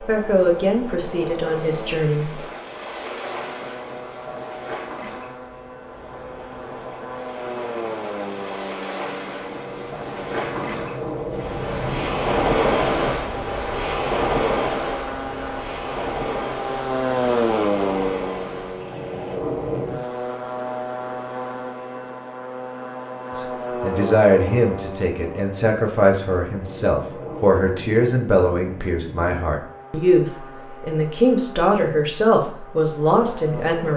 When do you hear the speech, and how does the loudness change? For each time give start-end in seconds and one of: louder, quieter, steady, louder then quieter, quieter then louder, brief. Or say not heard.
0.1-2.4 brief
23.4-33.9 steady.